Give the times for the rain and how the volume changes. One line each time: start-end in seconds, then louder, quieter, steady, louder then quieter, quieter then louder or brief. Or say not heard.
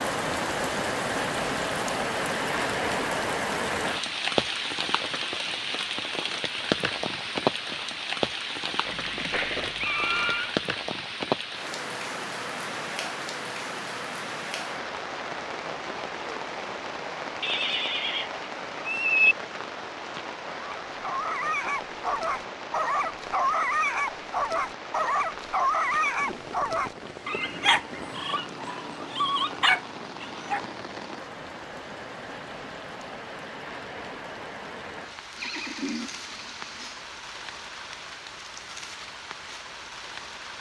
0.0-40.5 quieter.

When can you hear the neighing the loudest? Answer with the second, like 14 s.
19 s.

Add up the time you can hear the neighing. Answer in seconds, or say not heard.
5 s.